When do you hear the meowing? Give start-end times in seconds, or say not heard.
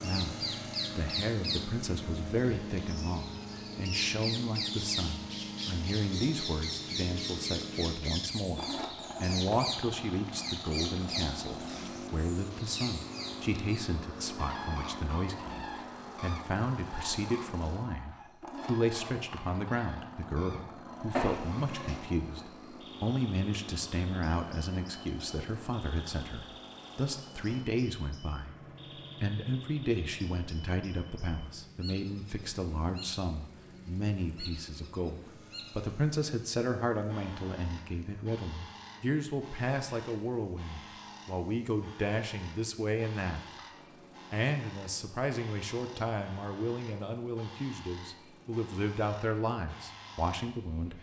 21.1-22.0.